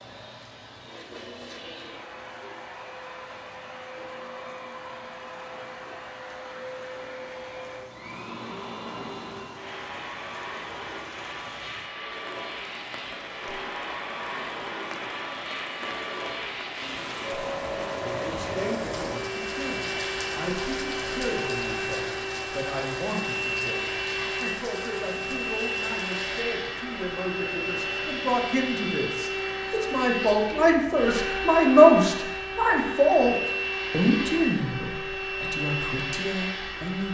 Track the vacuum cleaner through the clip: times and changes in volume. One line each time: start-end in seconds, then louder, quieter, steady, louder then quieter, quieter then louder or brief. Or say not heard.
0.0-37.0 louder.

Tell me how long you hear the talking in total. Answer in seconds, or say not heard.
19 s.